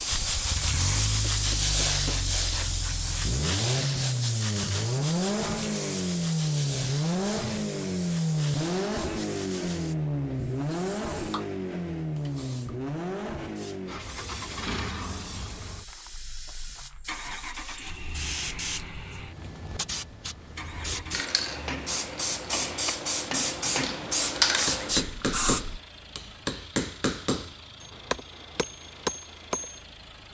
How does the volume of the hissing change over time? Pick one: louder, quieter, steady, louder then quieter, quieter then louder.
quieter then louder.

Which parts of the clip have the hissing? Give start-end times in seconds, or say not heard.
0.0-25.8.